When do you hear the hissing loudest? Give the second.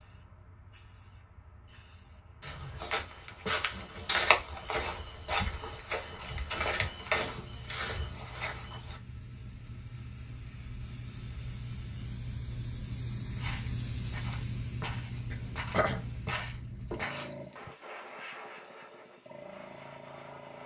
14 s.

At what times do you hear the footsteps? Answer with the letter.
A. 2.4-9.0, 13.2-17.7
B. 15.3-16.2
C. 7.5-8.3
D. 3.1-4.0
A.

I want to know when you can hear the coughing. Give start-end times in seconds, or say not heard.
15.3-16.2.